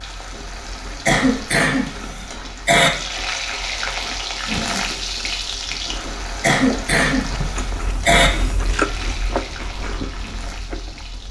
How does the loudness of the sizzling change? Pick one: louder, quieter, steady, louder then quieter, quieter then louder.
louder then quieter.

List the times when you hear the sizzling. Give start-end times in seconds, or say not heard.
0.0-11.2.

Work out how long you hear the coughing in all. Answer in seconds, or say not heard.
4 s.